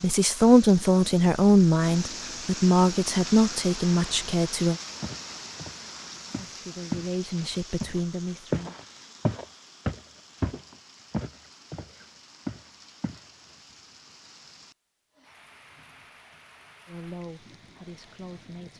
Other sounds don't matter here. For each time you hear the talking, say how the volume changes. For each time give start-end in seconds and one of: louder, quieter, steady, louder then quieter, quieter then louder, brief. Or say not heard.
0.0-4.8 quieter
6.3-8.8 brief
16.9-18.7 brief.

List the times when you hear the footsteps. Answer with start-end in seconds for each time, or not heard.
5.0-7.1, 7.8-13.2.